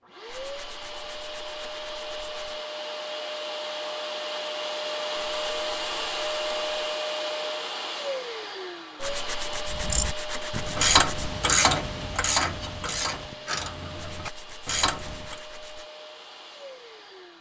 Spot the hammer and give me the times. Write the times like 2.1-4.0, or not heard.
not heard.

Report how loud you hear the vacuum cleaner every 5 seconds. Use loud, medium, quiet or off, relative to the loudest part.
loud, loud, medium, quiet.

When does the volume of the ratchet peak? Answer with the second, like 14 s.
11 s.